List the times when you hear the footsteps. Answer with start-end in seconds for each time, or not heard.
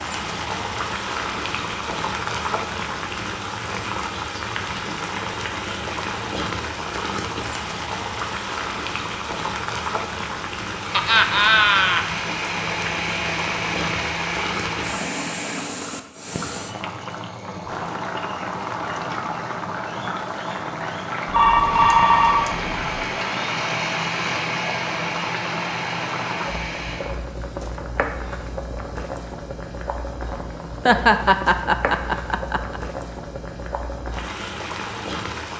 not heard.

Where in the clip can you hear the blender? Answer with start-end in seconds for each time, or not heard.
10.7-15.8, 21.6-27.1.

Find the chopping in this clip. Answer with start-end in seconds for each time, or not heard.
not heard.